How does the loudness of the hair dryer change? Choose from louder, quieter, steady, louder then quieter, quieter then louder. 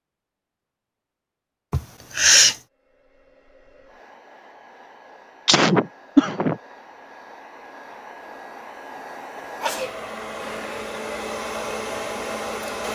louder.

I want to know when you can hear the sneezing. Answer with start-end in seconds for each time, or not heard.
1.7-2.5, 5.5-6.5, 9.4-10.8.